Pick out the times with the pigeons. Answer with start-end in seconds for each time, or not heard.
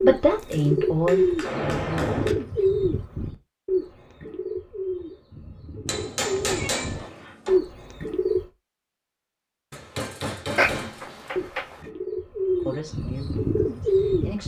0.0-8.4, 10.6-14.4.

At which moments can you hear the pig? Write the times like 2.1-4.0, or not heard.
not heard.